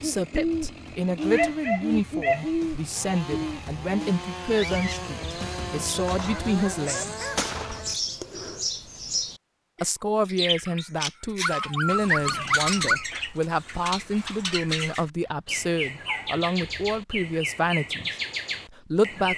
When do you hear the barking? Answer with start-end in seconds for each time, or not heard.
1.3-2.5, 6.2-7.8, 11.4-13.1, 15.2-17.0.